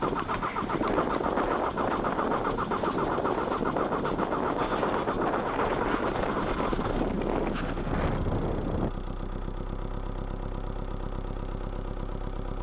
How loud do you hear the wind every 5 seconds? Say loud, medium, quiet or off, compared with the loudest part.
loud, loud, off.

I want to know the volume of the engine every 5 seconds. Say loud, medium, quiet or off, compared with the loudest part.
loud, loud, medium.